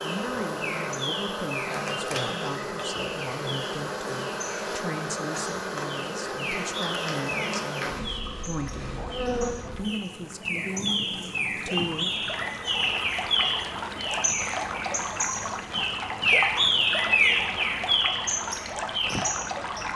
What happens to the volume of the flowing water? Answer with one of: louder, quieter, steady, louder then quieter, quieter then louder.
louder.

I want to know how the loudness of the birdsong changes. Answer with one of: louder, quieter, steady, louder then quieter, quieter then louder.
louder.